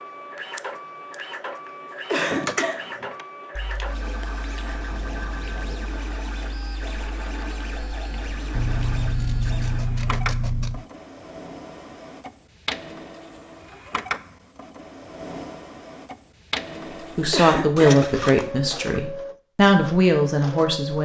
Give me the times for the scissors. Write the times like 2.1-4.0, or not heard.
0.6-1.1, 8.5-10.8, 17.8-18.4.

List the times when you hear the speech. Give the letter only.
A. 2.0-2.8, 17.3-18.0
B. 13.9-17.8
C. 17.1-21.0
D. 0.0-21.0
C.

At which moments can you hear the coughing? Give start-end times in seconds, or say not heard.
2.0-2.8, 17.3-18.0.